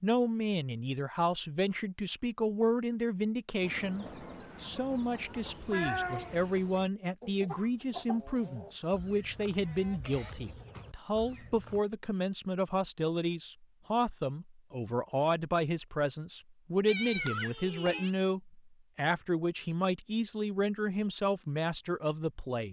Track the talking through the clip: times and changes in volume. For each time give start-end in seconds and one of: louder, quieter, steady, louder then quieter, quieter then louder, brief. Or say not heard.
0.0-22.6 steady.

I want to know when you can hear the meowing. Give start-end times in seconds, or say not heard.
5.2-6.8, 16.9-18.1.